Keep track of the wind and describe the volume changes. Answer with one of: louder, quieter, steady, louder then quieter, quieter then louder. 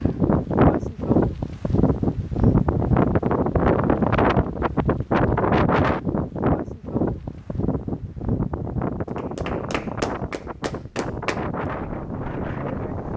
quieter.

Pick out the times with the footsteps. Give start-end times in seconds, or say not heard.
not heard.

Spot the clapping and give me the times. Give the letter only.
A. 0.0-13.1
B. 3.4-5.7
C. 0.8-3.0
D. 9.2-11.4
D.